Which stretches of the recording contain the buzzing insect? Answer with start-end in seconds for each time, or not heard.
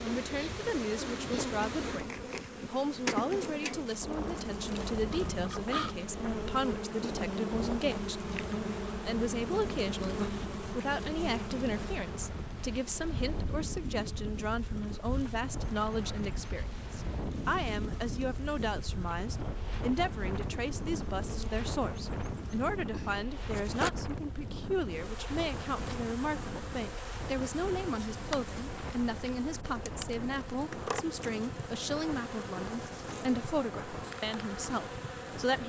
0.0-35.6.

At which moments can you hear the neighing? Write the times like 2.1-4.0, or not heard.
not heard.